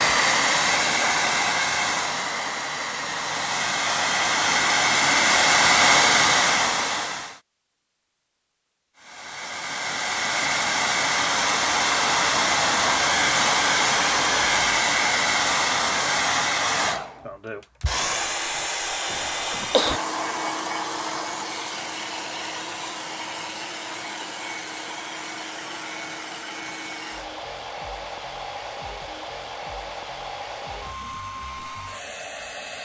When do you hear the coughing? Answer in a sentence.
You can hear the coughing from 19.1 to 20.0 s.